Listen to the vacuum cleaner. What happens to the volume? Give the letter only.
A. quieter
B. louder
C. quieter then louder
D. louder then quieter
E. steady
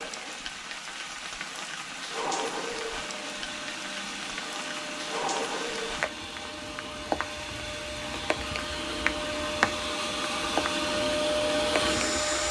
B.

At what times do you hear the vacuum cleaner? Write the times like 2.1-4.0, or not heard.
2.9-12.4.